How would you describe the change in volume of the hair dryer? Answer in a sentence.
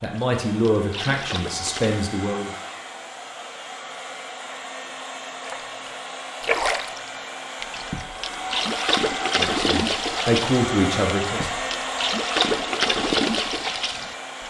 The volume of the hair dryer goes up.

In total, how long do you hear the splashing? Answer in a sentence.
You can hear the splashing for 11 seconds altogether.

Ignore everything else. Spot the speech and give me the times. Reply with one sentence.
You can hear the speech from 0.0 to 2.5 s and from 9.3 to 11.5 s.